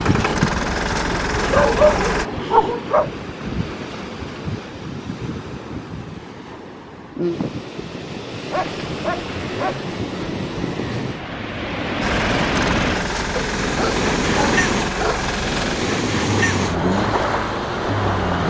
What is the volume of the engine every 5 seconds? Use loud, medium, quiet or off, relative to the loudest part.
loud, off, loud, loud.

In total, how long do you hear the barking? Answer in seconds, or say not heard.
5 s.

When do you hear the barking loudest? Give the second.
2 s.